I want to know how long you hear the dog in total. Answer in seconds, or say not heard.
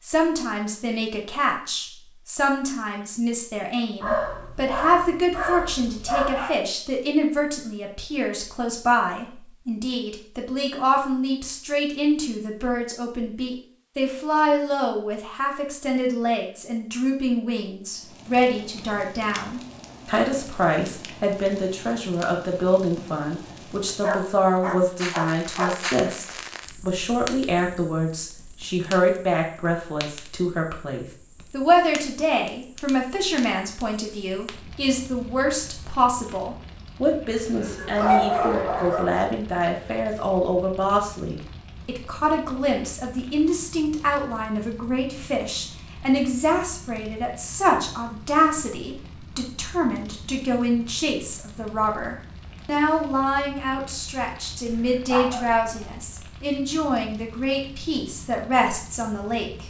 7 s.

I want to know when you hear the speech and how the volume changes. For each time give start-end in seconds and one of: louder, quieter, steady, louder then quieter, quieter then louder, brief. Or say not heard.
0.0-59.6 steady.